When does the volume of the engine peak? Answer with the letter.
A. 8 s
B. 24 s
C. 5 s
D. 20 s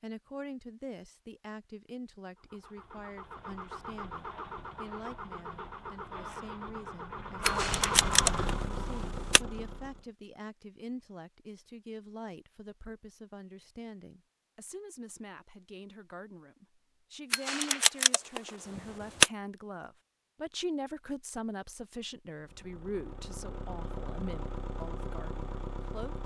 A.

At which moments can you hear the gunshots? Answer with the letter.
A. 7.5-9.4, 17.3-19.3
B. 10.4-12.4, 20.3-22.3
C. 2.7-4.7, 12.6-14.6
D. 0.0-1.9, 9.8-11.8
A.